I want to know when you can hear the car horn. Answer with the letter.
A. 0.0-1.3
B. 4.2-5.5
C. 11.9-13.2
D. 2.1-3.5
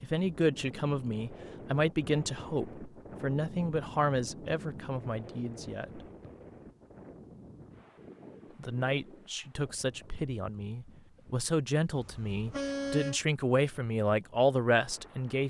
C.